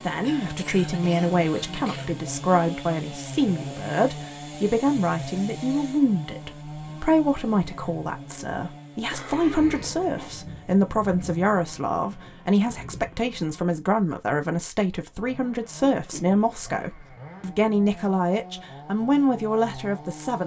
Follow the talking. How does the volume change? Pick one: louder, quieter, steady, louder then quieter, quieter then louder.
steady.